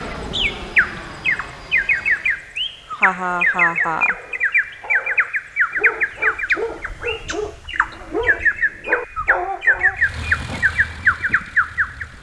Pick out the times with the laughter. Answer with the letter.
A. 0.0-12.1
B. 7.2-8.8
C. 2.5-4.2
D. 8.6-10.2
C.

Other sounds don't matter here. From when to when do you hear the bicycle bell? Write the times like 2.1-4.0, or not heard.
not heard.